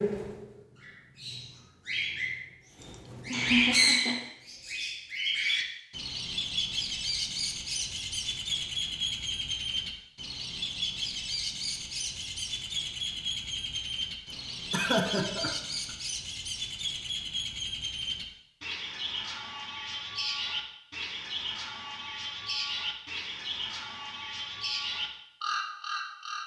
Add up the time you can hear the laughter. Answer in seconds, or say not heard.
3 s.